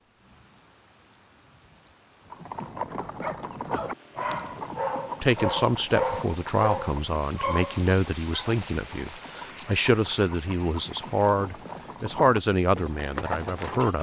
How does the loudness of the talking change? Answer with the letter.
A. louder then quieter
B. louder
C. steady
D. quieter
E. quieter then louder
C.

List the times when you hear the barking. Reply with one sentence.
You can hear the barking from 3.0 to 8.6 s.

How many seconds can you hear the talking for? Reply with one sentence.
The talking can be heard for 9 seconds in total.